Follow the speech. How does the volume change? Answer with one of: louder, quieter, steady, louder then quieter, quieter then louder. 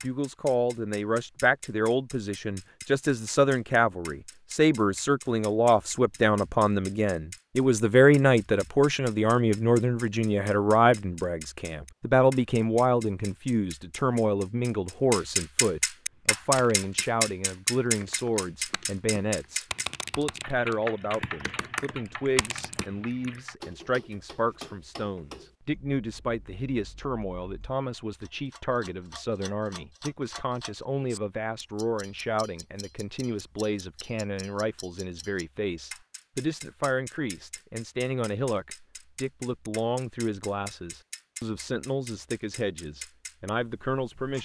quieter.